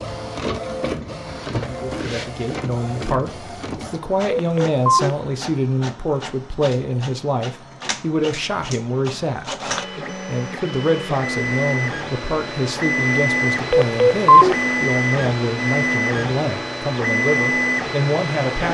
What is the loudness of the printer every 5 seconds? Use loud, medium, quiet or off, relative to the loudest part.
medium, medium, loud, loud.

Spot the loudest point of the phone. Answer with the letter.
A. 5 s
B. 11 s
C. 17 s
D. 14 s
D.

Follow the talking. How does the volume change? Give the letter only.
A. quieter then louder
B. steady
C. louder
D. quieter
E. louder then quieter
B.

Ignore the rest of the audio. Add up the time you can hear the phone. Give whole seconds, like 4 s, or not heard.
2 s.